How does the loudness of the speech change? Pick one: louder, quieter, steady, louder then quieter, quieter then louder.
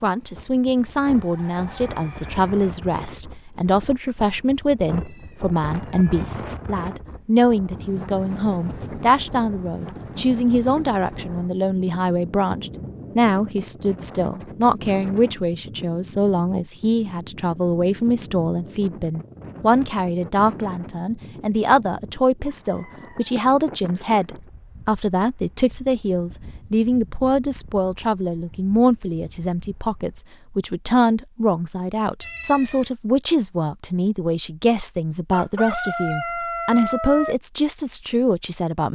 steady.